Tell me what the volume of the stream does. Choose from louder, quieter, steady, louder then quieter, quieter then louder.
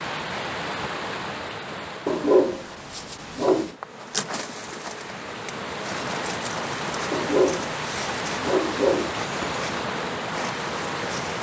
quieter then louder.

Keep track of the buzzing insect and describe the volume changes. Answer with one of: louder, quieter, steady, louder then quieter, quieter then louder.
steady.